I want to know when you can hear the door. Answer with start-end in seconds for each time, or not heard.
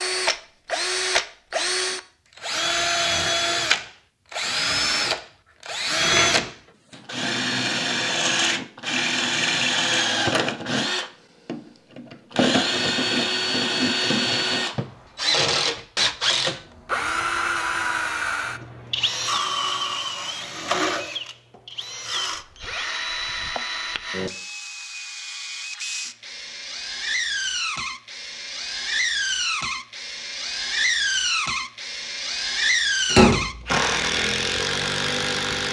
33.0-33.5.